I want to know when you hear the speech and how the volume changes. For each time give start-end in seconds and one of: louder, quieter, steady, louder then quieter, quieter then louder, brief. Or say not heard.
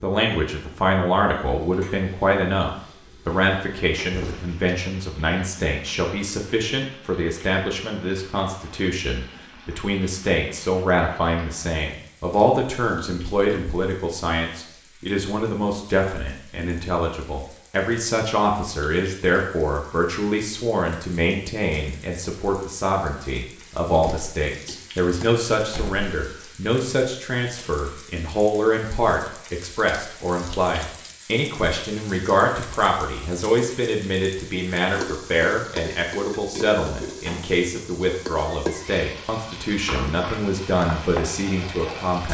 0.0-42.2 steady.